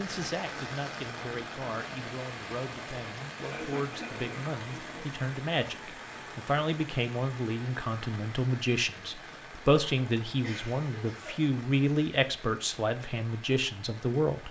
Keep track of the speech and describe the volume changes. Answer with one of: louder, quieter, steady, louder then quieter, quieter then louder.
louder.